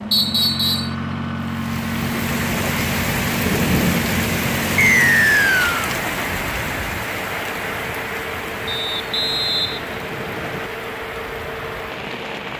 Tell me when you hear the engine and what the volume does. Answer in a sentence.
You can hear the engine from 0.0 to 12.5 s, getting quieter.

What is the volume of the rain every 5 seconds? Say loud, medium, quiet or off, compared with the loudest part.
loud, loud, medium.